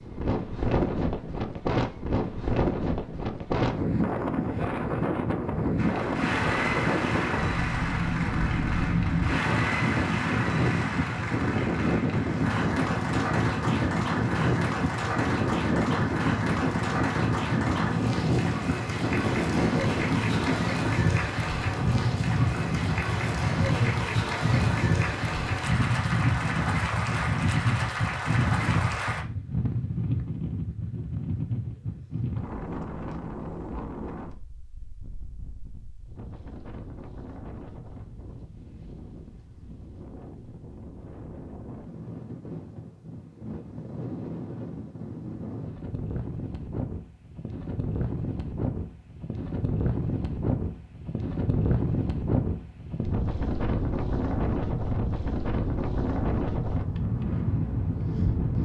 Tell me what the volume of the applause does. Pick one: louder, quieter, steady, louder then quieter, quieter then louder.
steady.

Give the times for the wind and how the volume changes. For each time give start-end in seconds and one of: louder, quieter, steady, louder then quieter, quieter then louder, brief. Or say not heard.
0.0-58.6 quieter then louder.